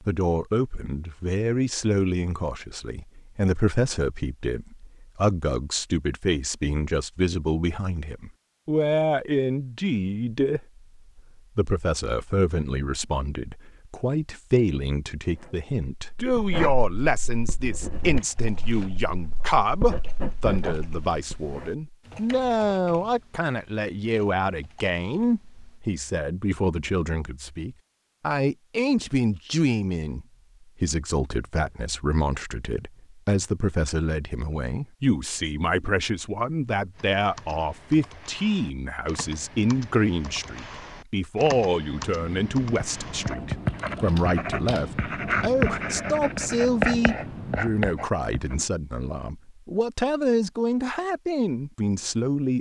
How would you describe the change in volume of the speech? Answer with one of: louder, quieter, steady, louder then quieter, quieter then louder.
steady.